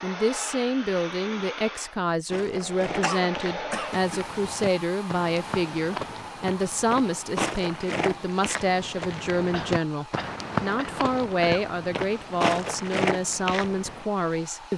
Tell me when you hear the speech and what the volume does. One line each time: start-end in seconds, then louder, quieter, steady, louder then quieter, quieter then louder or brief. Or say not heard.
0.0-14.7 steady.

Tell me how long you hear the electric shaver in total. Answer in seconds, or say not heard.
not heard.